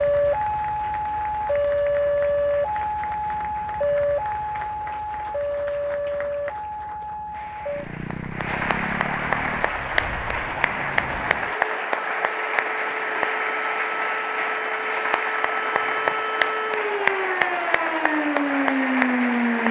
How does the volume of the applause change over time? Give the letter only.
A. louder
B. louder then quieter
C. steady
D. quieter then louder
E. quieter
A.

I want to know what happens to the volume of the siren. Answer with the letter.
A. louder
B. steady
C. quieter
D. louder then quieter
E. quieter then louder
E.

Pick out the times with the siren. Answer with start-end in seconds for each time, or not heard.
0.0-19.6.